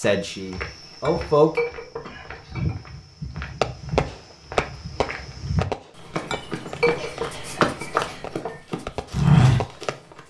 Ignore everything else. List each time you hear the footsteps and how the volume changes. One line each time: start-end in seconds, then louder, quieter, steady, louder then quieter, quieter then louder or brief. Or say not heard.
0.0-9.8 louder.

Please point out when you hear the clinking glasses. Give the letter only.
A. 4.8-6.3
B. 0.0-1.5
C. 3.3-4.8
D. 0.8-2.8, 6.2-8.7
D.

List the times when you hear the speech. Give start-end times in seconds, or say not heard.
0.0-1.5.